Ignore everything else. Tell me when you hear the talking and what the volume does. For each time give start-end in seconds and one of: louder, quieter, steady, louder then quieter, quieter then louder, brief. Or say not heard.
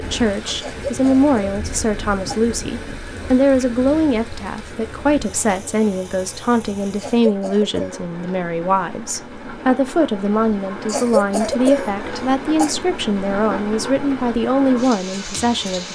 0.0-15.9 steady.